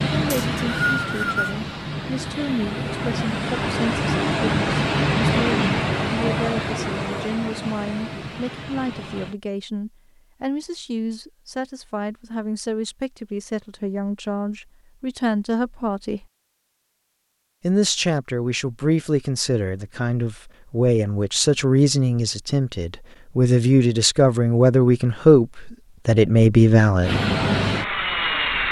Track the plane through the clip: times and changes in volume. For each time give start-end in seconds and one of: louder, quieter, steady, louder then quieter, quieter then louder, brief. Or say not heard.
0.0-9.3 louder then quieter
27.0-28.6 brief.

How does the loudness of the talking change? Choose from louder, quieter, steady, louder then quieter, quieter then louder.
louder.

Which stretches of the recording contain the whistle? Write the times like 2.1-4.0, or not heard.
0.3-1.6.